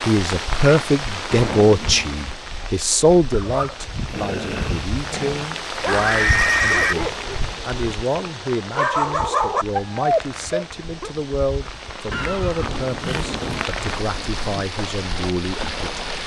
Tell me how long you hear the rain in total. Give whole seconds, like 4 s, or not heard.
16 s.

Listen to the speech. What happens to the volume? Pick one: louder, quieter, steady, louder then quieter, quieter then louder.
quieter.